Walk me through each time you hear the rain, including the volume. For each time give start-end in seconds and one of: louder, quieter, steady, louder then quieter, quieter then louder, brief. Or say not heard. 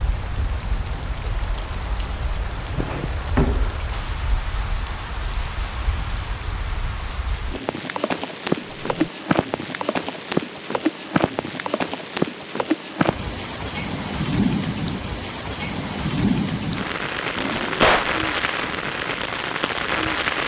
0.0-20.4 louder.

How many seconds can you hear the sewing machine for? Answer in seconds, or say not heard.
not heard.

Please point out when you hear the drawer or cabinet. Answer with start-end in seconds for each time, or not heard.
2.8-3.8, 8.6-9.1, 17.4-18.1.